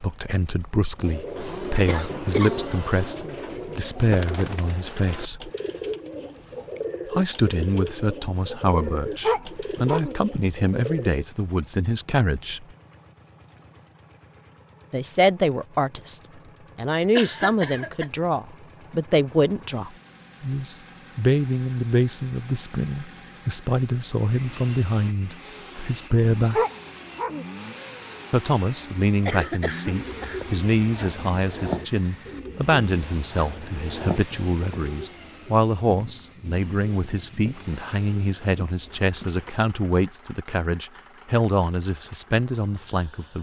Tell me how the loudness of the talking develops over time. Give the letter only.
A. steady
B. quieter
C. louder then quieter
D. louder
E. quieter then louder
A.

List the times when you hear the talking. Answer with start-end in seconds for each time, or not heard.
0.0-5.5, 7.1-12.7, 14.9-26.6, 28.3-43.3.